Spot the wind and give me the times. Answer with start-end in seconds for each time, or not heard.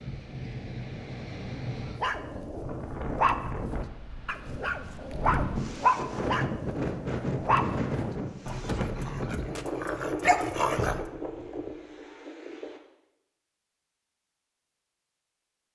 0.0-12.8.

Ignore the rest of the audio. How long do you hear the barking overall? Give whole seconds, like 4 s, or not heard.
9 s.